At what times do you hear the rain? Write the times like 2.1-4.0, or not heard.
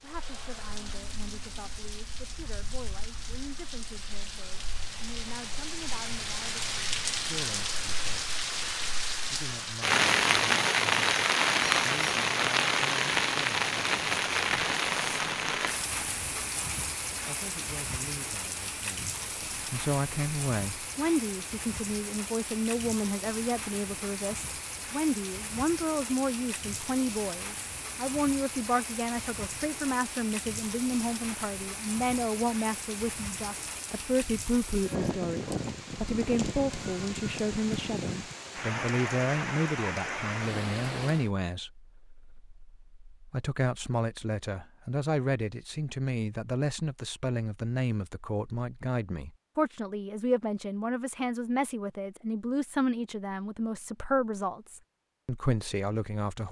0.0-41.3.